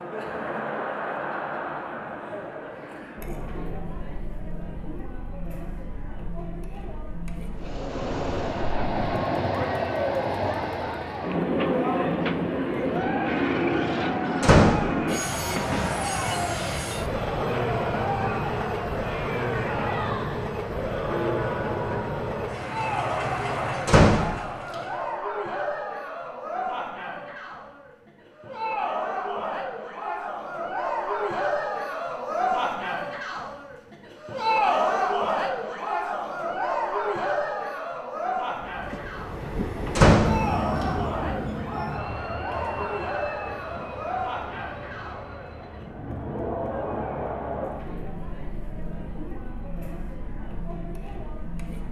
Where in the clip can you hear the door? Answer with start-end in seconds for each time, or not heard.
14.4-14.9, 23.9-24.4, 40.0-40.4.